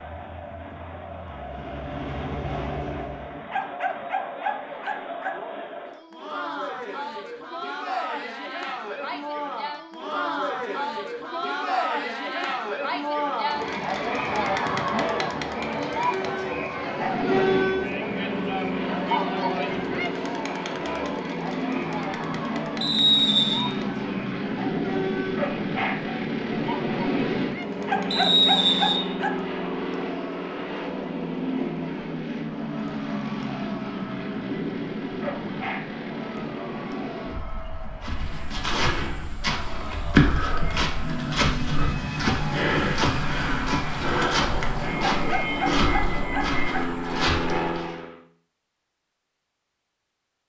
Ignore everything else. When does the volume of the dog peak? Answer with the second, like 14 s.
28 s.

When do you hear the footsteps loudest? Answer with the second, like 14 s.
40 s.